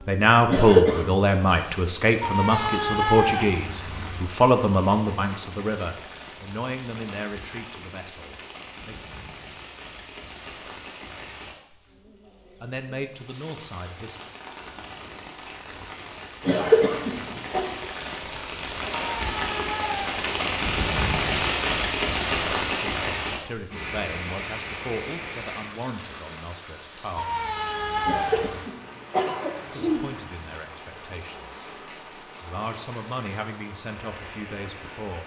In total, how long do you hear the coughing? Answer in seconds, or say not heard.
4 s.